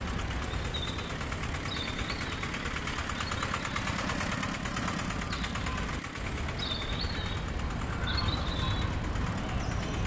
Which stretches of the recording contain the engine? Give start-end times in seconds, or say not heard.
0.0-10.0.